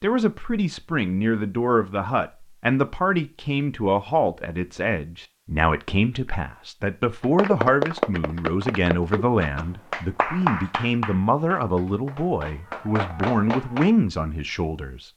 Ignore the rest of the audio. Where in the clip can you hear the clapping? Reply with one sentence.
The clapping can be heard from 7.2 to 13.9 s.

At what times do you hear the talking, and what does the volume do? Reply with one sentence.
The talking can be heard from 0.0 to 15.1 s, at a steady volume.